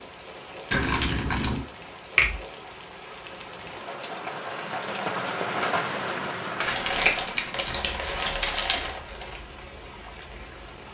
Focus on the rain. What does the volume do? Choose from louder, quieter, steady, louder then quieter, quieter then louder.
louder then quieter.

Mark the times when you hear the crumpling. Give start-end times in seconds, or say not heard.
0.7-1.6, 6.6-9.4.